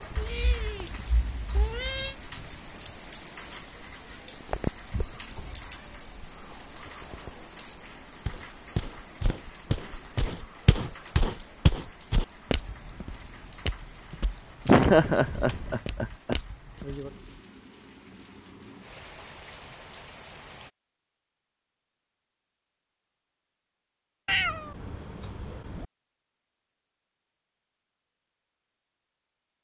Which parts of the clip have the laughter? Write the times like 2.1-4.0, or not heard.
14.7-16.4.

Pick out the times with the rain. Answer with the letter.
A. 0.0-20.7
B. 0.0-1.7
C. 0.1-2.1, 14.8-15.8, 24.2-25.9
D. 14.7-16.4
A.